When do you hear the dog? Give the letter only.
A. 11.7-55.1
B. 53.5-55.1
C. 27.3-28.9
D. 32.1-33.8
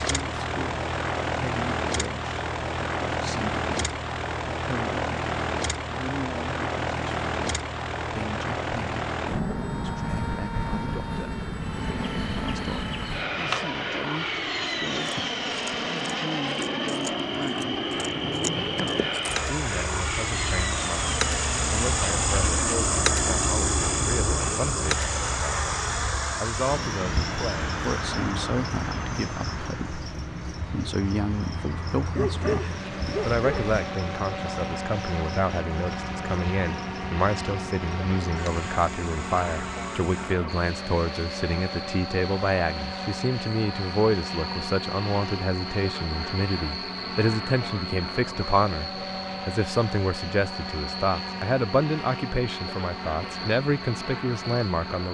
D.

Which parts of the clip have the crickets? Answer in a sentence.
You can hear the crickets from 11.7 to 55.1 s.